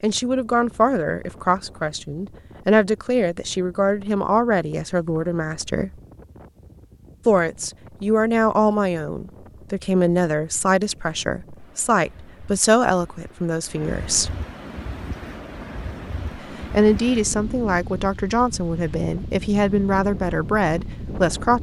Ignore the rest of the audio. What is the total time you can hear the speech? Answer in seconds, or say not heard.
18 s.